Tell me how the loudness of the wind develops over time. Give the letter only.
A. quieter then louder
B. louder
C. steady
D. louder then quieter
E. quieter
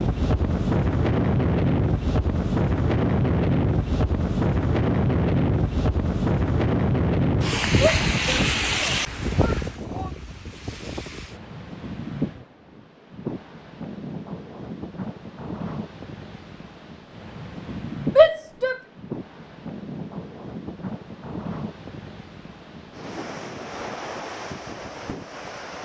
E.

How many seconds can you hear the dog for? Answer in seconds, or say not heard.
not heard.